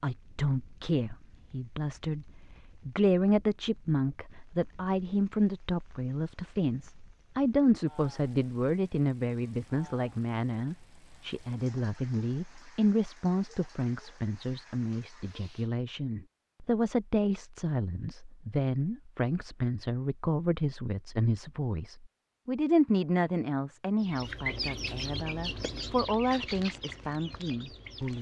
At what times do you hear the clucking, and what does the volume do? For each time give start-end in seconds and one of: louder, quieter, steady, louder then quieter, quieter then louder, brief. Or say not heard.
24.0-28.1 quieter.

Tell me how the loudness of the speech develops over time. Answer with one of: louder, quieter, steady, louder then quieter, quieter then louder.
steady.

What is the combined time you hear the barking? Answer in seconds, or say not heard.
not heard.